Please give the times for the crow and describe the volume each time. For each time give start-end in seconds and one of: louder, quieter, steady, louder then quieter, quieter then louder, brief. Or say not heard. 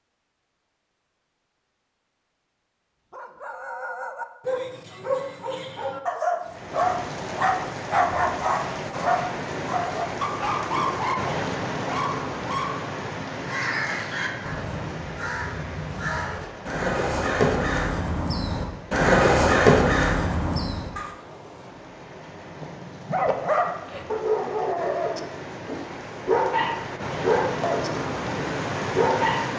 13.3-21.1 louder.